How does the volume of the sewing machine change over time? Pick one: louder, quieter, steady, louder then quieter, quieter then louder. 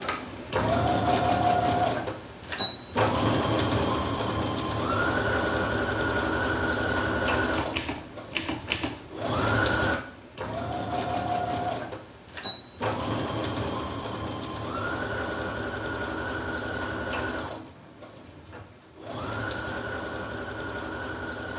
quieter.